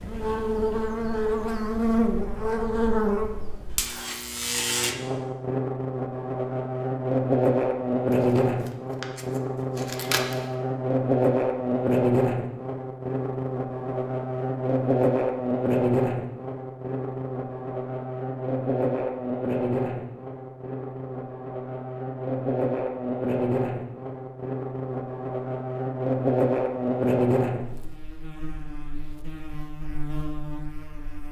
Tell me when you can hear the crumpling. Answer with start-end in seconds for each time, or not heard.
8.1-10.5.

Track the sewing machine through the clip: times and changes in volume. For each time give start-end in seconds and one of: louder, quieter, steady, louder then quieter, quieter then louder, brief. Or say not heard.
not heard.